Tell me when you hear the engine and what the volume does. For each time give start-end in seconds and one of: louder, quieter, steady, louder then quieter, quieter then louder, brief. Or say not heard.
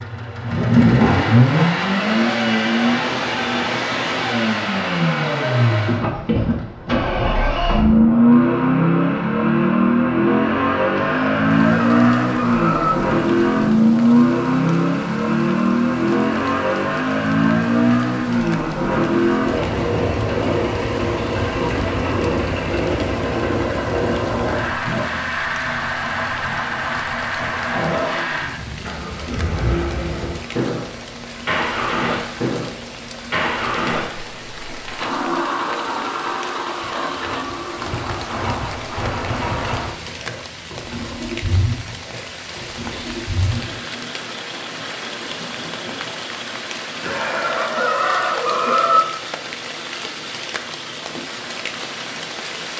0.0-52.7 quieter.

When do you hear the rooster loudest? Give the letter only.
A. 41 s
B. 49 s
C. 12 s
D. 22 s
B.